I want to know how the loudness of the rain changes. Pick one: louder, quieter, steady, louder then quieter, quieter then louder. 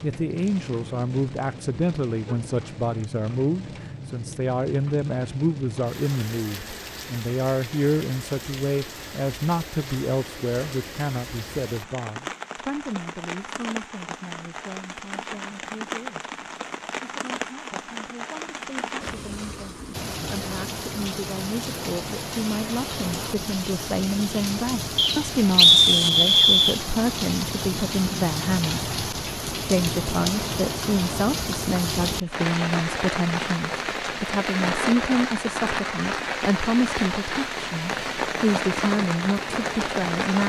louder.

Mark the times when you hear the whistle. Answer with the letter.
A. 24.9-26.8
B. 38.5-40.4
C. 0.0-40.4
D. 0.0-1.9
A.